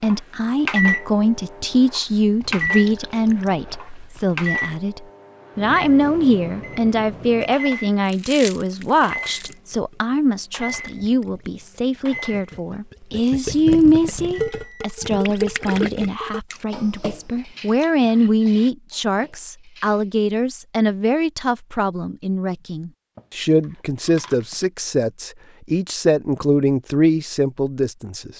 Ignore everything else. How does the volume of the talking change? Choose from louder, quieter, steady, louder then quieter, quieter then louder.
steady.